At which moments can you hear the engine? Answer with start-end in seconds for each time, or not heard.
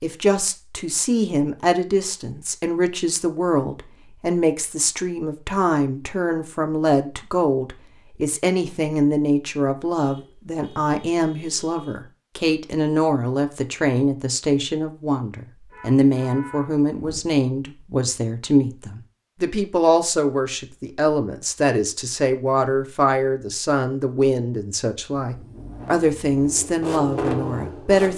25.2-28.1.